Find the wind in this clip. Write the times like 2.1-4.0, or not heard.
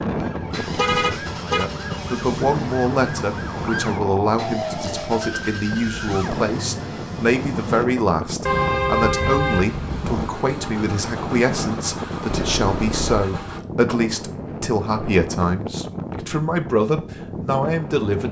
0.0-18.2.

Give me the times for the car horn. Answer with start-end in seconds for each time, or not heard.
0.2-1.7, 8.4-10.3, 12.2-13.3.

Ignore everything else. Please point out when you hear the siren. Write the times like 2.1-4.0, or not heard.
0.2-6.5.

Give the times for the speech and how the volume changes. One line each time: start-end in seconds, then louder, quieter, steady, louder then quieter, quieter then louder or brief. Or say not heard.
1.4-18.2 steady.